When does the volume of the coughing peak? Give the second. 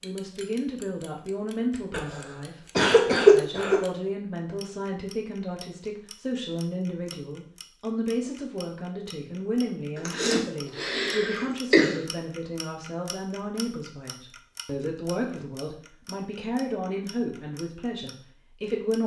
3 s.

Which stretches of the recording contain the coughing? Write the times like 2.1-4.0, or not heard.
1.9-3.8, 9.9-12.1.